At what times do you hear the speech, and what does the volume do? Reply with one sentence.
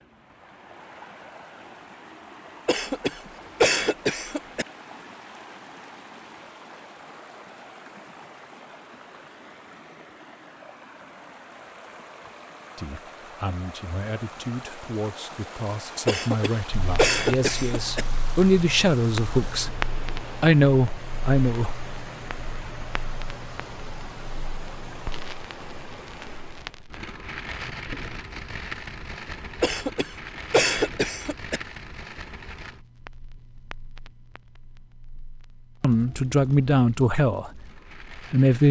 The speech can be heard from 12.8 to 21.9 s, getting louder; and briefly from 35.8 to 38.6 s.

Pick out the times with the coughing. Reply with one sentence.
The coughing can be heard from 2.6 to 4.7 s, from 16.1 to 18.1 s and from 29.6 to 31.6 s.